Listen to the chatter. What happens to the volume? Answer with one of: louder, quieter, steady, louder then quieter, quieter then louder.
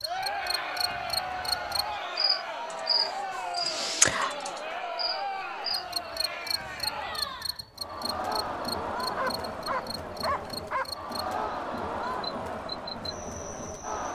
steady.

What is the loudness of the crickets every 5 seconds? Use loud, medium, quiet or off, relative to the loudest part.
loud, medium, quiet.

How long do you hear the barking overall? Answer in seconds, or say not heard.
2 s.